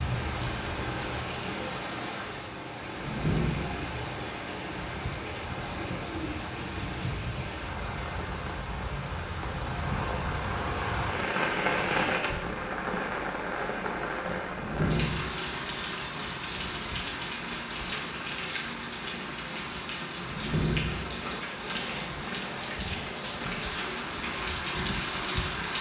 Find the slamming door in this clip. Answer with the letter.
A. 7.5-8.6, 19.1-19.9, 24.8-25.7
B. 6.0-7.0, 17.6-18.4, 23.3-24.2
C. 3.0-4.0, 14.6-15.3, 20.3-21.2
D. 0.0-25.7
C.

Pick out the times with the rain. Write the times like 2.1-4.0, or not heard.
0.0-25.7.